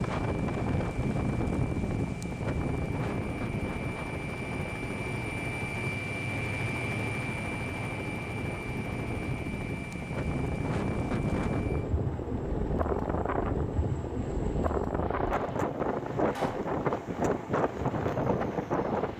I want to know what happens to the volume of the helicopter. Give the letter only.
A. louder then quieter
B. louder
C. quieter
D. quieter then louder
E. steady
A.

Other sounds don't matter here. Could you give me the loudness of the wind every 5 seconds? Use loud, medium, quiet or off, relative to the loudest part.
loud, medium, loud, loud.